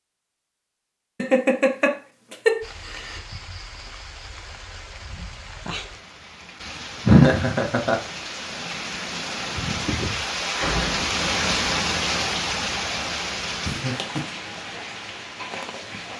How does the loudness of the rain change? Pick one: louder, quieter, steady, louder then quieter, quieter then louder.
louder then quieter.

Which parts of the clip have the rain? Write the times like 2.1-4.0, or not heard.
2.6-16.1.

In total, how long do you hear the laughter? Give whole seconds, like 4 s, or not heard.
3 s.